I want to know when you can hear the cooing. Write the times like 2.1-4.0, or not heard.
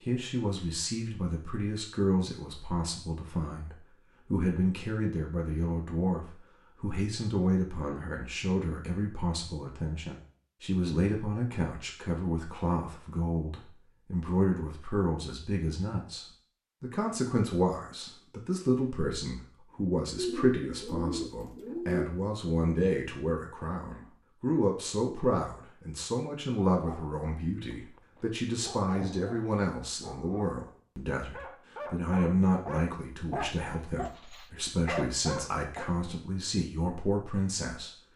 20.1-22.1.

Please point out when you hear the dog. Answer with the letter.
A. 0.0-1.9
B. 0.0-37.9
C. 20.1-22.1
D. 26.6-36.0
D.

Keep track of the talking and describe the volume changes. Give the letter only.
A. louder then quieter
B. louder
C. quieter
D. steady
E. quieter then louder
D.